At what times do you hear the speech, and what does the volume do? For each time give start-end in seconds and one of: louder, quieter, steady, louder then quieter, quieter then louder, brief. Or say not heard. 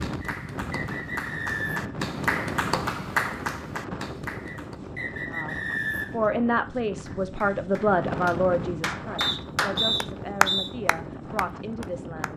5.2-12.3 quieter.